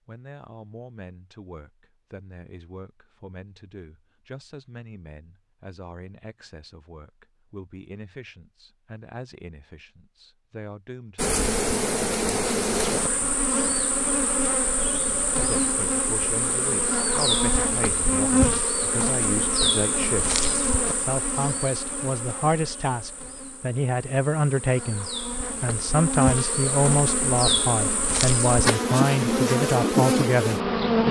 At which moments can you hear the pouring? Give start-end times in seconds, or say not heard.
not heard.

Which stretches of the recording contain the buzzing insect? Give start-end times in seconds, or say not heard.
11.2-31.0.